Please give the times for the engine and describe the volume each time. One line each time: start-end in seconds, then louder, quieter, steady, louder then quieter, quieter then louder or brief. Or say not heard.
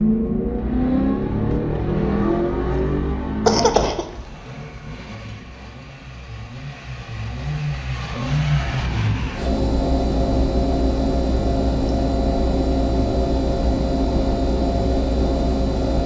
0.0-16.0 quieter then louder.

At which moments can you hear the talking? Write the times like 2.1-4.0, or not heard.
not heard.